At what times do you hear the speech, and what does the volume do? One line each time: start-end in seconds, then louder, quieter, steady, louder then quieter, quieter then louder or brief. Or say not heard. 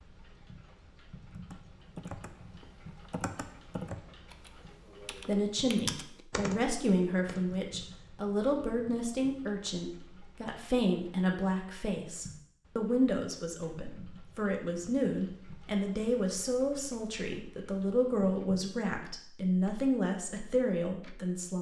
5.2-21.5 steady.